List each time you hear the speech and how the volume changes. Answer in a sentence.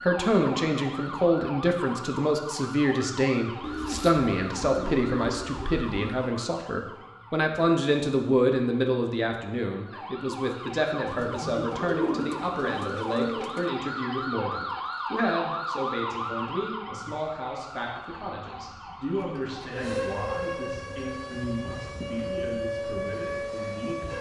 The speech can be heard from 0.0 to 24.1 s, getting quieter.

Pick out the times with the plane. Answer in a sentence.
You can't hear the plane here.